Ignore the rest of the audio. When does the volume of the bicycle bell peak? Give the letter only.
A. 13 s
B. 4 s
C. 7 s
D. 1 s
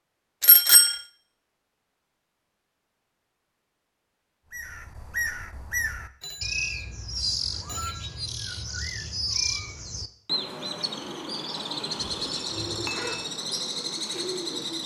D.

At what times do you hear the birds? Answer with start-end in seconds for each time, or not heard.
4.5-14.8.